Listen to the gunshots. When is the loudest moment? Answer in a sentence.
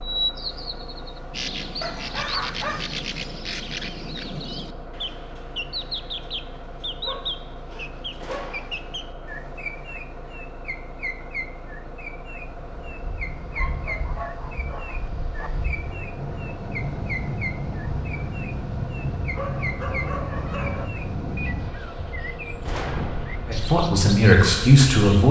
The loudest moment of the gunshots is at 23 seconds.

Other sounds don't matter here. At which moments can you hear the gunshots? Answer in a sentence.
You can hear the gunshots from 8.2 to 8.9 s and from 22.6 to 23.4 s.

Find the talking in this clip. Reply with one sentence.
The talking can be heard from 23.4 to 25.2 s.